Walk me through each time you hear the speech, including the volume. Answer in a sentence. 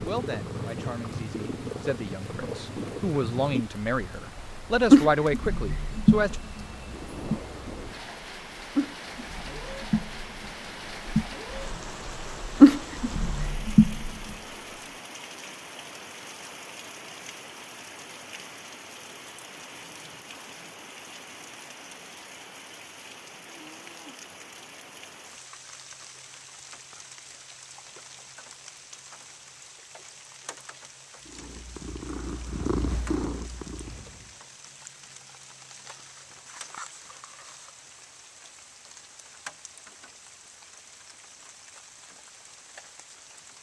You can hear the speech from 0.0 to 6.4 s, getting louder.